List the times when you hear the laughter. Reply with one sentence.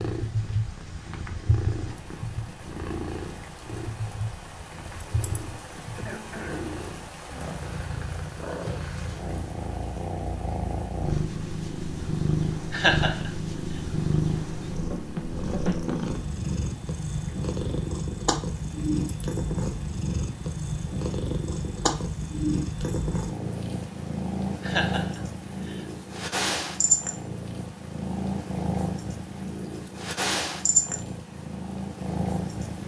You can hear the laughter from 12.7 to 13.3 s and from 24.6 to 25.9 s.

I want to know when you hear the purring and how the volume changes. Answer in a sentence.
The purring can be heard from 0.0 to 32.8 s, getting louder.